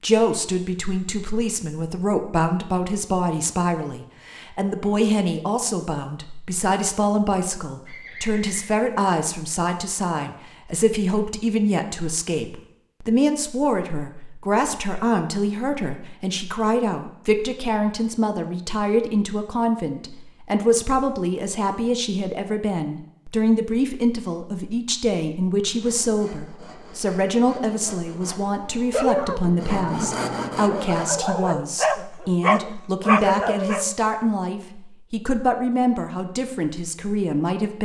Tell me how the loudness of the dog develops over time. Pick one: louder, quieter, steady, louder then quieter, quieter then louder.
louder.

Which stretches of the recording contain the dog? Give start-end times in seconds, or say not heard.
28.9-34.0.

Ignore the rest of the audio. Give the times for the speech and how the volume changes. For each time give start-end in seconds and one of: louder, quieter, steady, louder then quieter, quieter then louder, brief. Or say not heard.
0.0-37.7 steady.